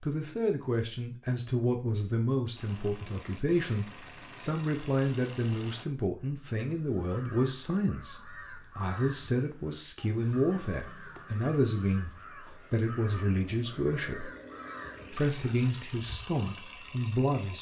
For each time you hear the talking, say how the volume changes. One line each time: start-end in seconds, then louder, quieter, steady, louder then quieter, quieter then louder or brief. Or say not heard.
0.0-12.1 steady
12.7-14.3 brief
15.1-17.5 brief.